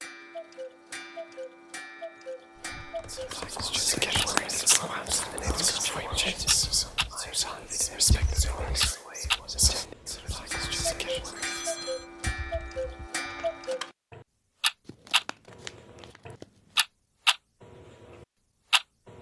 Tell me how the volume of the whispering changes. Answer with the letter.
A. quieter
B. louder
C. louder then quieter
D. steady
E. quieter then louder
A.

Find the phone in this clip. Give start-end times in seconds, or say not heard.
11.3-12.1.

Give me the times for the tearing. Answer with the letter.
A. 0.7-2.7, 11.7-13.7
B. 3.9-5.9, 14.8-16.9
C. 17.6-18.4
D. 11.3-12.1
B.